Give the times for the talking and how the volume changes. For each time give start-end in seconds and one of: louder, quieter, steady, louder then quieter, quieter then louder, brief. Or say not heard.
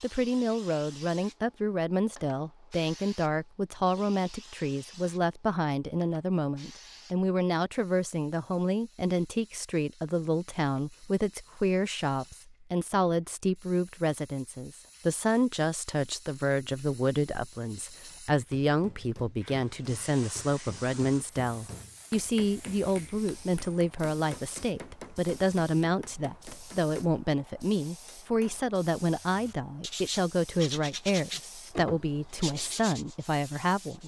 0.0-34.0 steady.